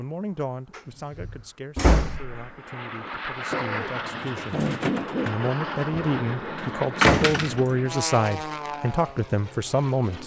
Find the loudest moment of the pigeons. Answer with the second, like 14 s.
5 s.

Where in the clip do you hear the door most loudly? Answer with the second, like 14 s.
7 s.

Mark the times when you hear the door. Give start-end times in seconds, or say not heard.
0.8-2.4, 7.0-7.8.